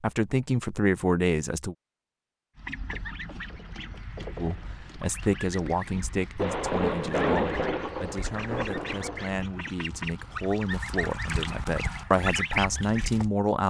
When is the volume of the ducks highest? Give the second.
12 s.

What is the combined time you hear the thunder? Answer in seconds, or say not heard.
3 s.